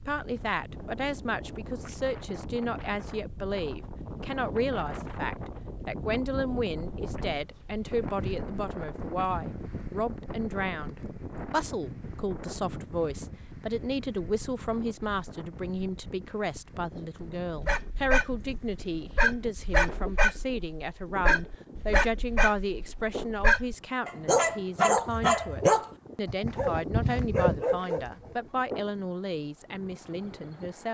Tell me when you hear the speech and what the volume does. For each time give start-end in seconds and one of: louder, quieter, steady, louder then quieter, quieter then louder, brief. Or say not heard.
0.1-30.8 steady.